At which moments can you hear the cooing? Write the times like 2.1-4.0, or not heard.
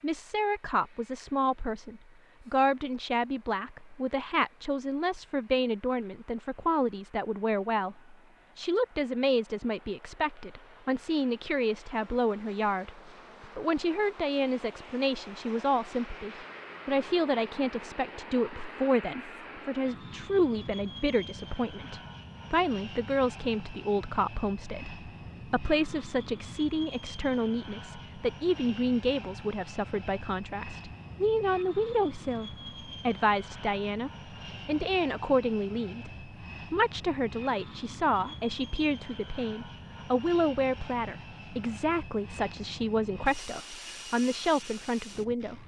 not heard.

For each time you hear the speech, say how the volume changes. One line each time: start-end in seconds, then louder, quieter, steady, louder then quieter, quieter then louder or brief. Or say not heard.
0.0-45.6 steady.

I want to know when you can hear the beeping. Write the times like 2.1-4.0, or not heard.
not heard.